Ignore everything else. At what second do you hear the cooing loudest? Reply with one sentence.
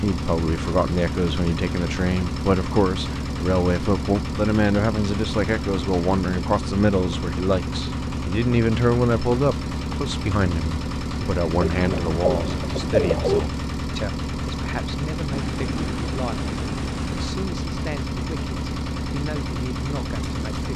The volume of the cooing peaks at 13 seconds.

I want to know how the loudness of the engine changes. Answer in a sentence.
The loudness of the engine stays about the same.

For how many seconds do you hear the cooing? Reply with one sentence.
You can hear the cooing for 2 seconds altogether.